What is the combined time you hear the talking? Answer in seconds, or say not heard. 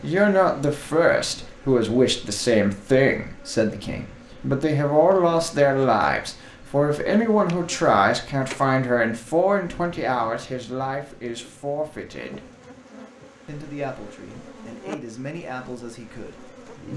16 s.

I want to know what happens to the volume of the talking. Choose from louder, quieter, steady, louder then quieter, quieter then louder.
quieter.